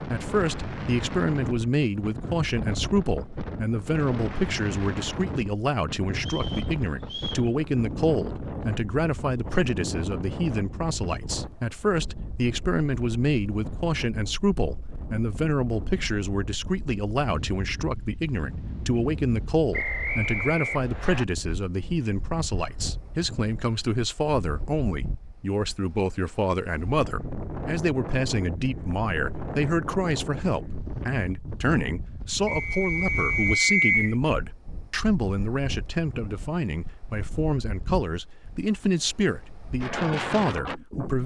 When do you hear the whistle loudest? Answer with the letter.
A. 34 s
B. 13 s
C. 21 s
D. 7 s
A.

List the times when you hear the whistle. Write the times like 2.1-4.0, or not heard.
6.2-7.5, 19.7-21.2, 32.5-34.1.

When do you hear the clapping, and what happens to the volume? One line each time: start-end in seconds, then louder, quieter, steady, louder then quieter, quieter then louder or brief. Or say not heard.
not heard.